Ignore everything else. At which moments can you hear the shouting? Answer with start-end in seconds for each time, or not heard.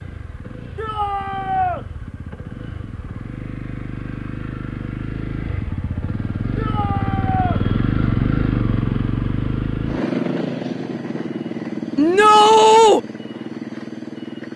0.8-1.9, 6.5-7.6, 11.9-13.0.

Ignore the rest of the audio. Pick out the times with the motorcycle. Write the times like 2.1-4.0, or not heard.
0.0-14.5.